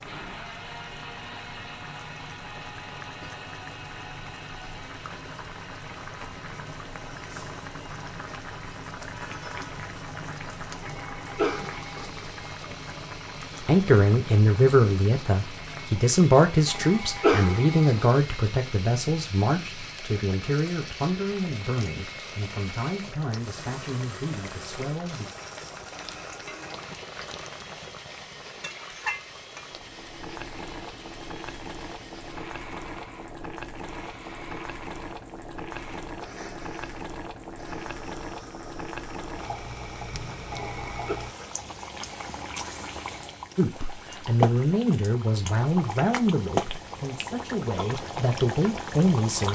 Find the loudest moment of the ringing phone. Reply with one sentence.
The loudest moment of the ringing phone is at 17 seconds.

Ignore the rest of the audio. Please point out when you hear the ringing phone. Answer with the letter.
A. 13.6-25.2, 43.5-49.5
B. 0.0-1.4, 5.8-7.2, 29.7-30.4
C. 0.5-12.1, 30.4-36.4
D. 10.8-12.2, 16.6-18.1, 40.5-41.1
D.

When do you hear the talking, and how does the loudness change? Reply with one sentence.
You can hear the talking from 13.6 to 25.2 s, getting quieter; and from 43.5 to 49.5 s, getting quieter then louder.